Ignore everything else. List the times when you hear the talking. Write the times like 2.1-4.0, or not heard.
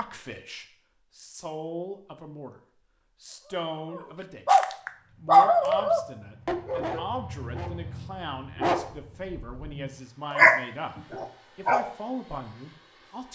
0.0-2.6, 3.2-4.5, 5.2-13.3.